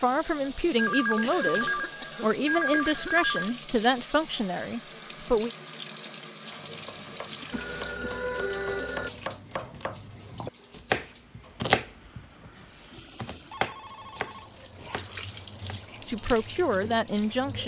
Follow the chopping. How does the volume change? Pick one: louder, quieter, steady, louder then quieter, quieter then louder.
louder then quieter.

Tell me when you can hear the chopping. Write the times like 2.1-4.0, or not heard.
6.7-15.8.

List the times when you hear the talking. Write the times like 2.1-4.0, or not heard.
0.0-5.5, 16.1-17.6.